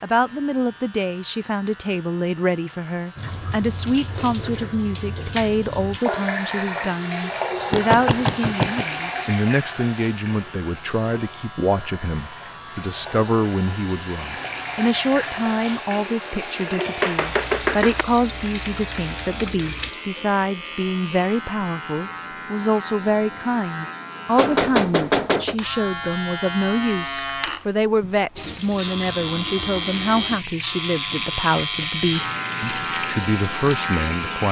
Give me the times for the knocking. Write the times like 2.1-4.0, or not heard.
7.7-8.8, 17.0-18.1, 24.4-25.6.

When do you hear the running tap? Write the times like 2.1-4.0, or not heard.
3.1-19.9, 28.4-34.4.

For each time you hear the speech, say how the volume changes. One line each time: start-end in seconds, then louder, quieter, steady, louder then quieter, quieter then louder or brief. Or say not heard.
0.0-34.4 steady.